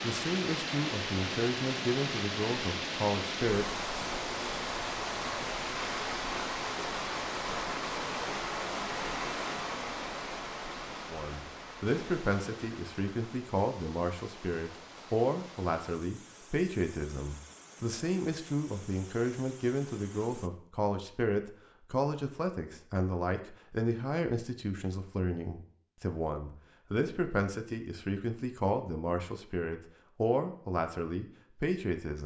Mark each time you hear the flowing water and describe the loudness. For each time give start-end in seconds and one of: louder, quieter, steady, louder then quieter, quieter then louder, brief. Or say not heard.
0.0-20.5 quieter.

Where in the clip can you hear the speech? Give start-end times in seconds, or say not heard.
0.0-3.8, 11.1-32.2.